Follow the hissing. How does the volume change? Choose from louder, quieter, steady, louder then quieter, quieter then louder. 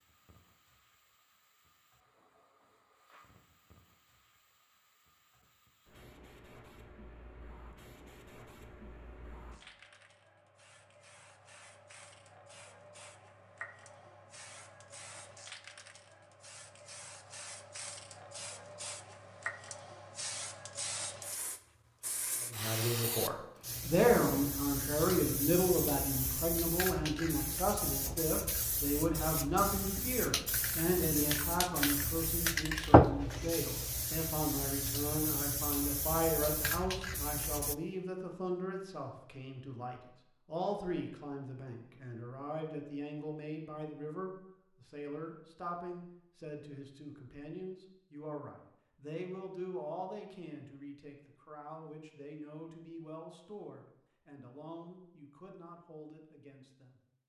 louder.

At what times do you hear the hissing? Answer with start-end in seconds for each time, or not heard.
0.0-37.8.